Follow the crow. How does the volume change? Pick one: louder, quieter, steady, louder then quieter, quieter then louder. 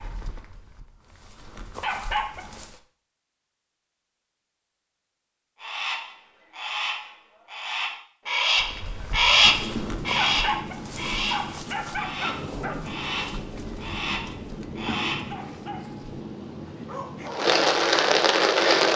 louder then quieter.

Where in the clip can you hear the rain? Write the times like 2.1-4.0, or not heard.
9.4-18.9.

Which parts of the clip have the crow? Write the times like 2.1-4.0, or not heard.
5.6-15.3.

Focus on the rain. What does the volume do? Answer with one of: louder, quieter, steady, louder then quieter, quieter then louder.
louder.